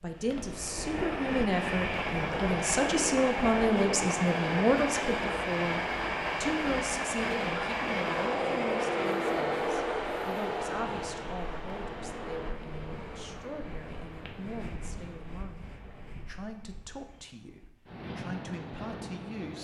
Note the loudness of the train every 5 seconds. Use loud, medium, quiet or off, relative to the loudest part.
loud, loud, medium, quiet.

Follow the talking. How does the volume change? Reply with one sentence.
The volume of the talking goes down.